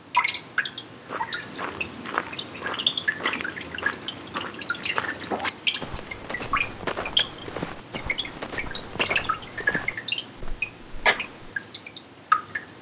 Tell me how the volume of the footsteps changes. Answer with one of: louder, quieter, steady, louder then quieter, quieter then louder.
steady.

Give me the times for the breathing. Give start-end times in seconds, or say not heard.
not heard.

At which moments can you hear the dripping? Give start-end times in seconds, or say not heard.
0.1-12.7.